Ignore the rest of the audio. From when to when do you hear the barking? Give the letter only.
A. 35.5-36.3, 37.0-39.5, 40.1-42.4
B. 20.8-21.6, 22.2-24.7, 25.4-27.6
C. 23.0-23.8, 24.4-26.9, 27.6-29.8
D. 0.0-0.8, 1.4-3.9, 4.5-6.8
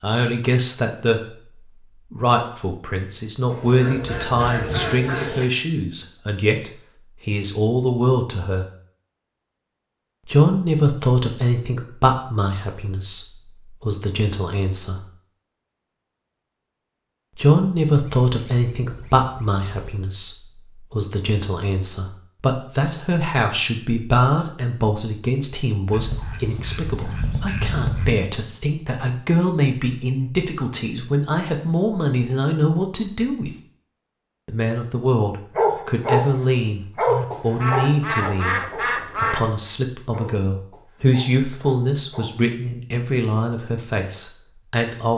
A.